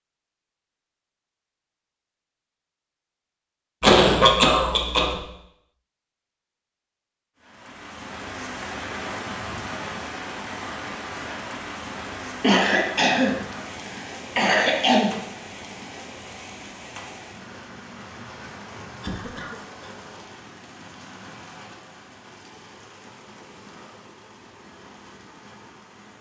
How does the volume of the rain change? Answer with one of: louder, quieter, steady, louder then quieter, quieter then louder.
quieter.